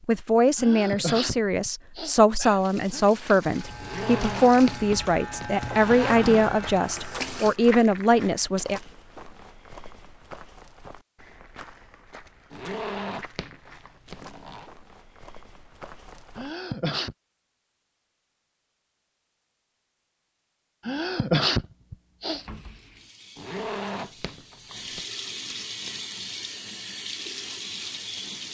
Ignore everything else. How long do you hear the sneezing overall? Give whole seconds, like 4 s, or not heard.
5 s.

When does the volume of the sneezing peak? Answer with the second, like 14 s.
21 s.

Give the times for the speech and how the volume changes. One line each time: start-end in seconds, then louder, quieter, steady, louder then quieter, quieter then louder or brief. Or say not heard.
0.1-8.8 steady.